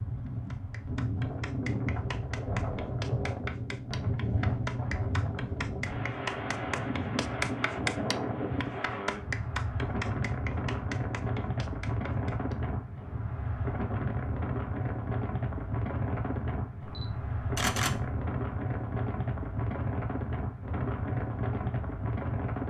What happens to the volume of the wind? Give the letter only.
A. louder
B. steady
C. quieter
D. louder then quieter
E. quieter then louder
B.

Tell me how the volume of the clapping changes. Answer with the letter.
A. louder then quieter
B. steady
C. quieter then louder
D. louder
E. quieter
A.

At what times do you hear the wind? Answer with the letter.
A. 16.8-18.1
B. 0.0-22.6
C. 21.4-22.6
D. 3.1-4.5
B.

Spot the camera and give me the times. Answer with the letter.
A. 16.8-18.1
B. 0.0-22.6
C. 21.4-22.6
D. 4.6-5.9
A.